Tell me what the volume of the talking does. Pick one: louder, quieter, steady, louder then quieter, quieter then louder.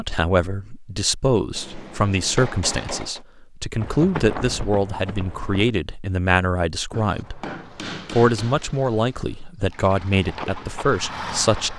steady.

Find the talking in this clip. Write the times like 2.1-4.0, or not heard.
0.0-7.4, 8.1-11.7.